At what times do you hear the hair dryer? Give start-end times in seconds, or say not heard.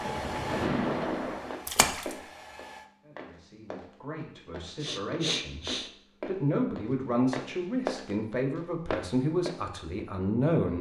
0.0-2.9.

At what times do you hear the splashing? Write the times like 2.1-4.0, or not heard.
0.0-2.1.